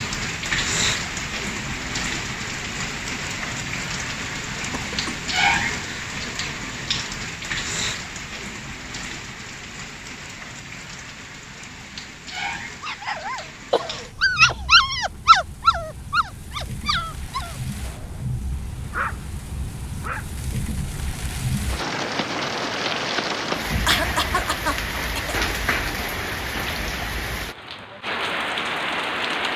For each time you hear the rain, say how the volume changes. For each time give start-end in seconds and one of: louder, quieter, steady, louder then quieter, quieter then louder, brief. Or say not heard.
0.0-29.5 quieter then louder.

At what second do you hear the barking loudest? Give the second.
15 s.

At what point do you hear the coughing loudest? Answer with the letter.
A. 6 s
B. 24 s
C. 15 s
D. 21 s
B.